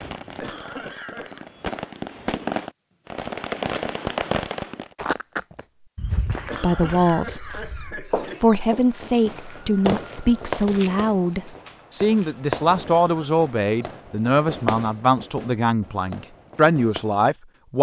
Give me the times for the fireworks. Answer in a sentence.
The fireworks can be heard from 0.0 to 4.9 s and from 8.5 to 17.1 s.